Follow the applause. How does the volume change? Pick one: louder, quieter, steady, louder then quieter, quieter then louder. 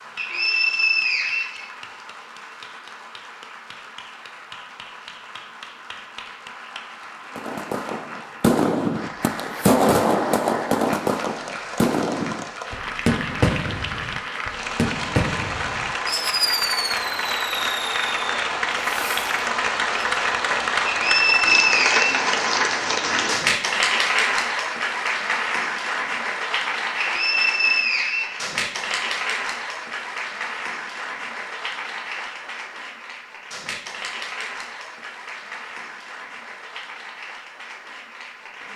louder then quieter.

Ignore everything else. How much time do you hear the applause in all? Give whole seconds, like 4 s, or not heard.
39 s.